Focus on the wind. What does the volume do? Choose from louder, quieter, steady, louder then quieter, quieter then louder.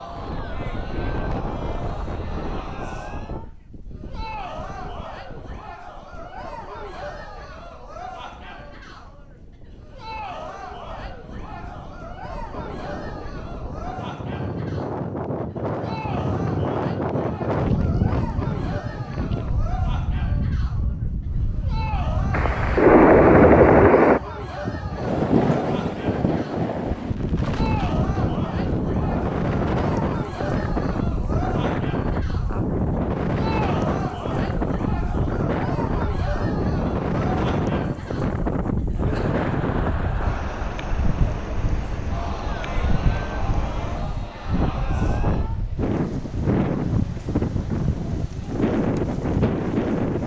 louder.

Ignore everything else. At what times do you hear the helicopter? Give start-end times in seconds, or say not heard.
22.3-24.2.